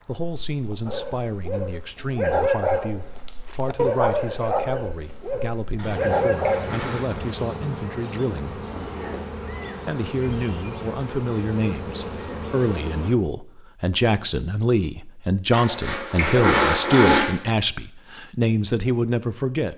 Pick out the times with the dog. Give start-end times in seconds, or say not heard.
0.8-7.3.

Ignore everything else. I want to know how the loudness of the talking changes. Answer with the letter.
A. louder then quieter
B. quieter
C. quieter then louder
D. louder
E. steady
D.